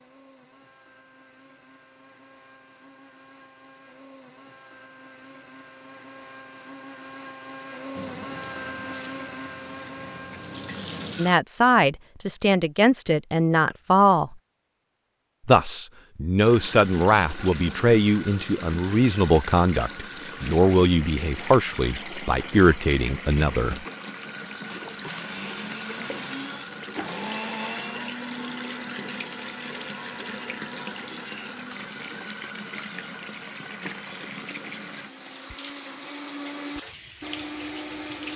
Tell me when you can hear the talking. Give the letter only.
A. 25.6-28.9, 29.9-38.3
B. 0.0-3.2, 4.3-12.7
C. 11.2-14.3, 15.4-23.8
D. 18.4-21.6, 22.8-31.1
C.